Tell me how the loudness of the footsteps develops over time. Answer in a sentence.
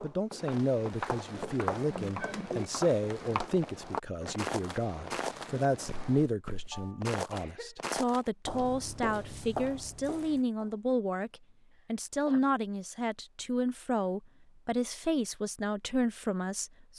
The volume of the footsteps stays about the same.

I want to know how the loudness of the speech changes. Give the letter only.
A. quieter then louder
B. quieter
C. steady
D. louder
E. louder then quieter
C.